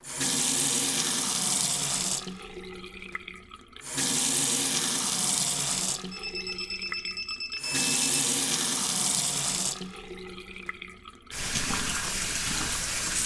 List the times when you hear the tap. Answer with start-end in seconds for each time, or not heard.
0.0-13.2.